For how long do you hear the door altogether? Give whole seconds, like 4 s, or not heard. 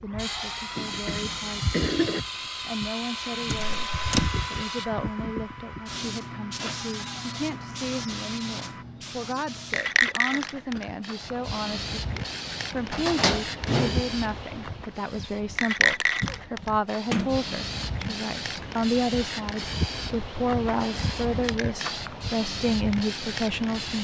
3 s.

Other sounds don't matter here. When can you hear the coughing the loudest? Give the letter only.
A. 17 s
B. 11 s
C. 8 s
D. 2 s
D.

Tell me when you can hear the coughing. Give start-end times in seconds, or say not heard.
0.8-2.2, 10.3-10.9, 16.2-16.8.